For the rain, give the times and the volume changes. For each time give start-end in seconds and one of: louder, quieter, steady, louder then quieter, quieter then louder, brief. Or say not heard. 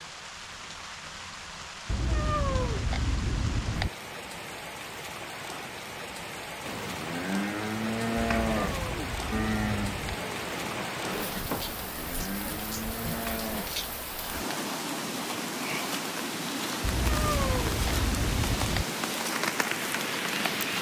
0.0-20.7 louder.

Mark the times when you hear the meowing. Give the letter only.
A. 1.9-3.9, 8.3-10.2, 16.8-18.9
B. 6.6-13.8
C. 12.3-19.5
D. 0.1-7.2
A.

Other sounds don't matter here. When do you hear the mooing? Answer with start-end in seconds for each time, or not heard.
6.6-13.8.